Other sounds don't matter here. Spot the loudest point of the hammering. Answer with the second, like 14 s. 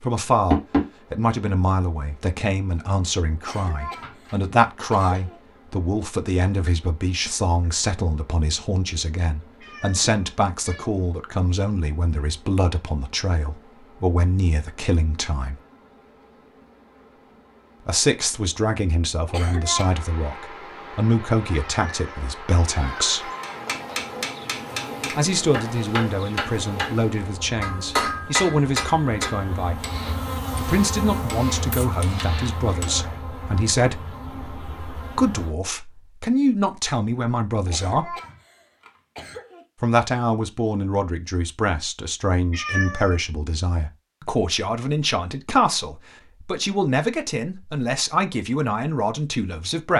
28 s.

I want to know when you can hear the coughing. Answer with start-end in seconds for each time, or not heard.
3.4-5.4, 19.2-20.0, 37.6-39.6.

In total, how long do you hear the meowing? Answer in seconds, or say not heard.
4 s.